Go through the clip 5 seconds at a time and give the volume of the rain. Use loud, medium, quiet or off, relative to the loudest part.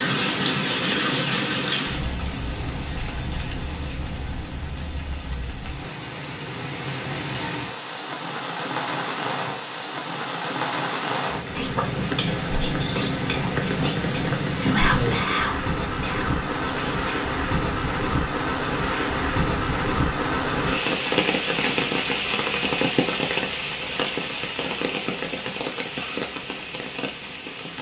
loud, medium, loud, loud, loud, medium.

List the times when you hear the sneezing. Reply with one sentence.
You can't hear the sneezing here.